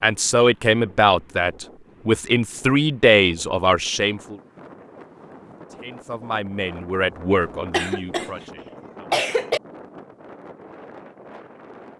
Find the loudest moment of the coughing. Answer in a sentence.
The loudest moment of the coughing is at 9 seconds.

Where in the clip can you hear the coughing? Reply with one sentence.
You can hear the coughing from 7.7 to 9.6 s.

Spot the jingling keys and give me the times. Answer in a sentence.
The jingling keys can't be heard in this clip.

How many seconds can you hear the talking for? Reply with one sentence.
The talking can be heard for 8 seconds in total.